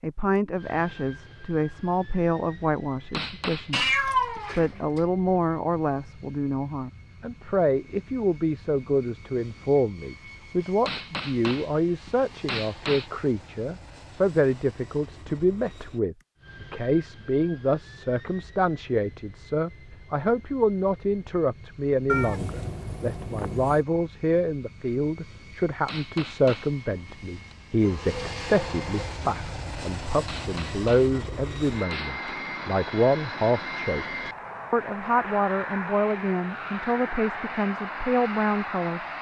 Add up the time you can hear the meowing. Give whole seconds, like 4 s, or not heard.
4 s.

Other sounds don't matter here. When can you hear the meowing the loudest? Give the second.
4 s.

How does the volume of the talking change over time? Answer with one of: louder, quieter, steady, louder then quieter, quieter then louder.
steady.